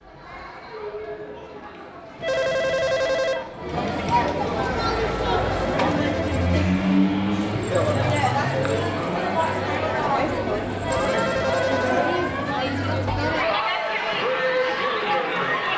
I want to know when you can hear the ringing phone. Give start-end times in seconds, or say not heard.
2.1-3.5, 5.4-6.7, 10.8-11.9.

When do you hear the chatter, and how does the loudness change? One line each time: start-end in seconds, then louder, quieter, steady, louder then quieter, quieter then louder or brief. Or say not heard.
0.0-15.7 louder.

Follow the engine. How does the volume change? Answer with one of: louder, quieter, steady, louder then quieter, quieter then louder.
louder then quieter.